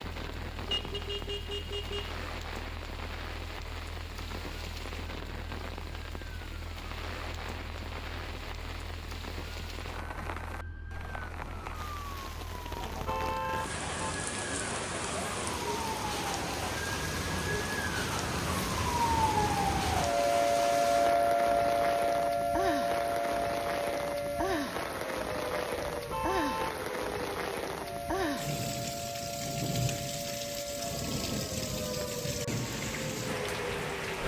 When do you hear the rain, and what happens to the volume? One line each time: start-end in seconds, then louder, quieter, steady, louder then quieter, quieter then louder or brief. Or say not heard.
0.0-34.2 louder.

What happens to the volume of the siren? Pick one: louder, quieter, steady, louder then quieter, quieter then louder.
louder then quieter.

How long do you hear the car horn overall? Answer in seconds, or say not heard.
4 s.